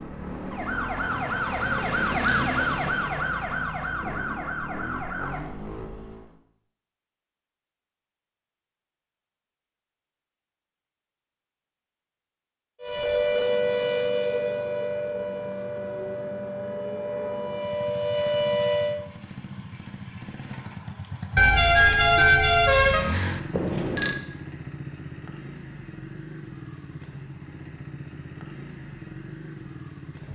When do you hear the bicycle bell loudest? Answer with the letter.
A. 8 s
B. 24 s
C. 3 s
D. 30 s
B.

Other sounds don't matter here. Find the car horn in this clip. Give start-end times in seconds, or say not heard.
21.4-23.1.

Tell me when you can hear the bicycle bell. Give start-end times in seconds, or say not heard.
1.8-3.0, 23.5-24.2.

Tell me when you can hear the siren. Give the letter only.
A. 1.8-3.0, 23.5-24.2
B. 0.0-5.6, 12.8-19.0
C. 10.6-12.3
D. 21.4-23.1
B.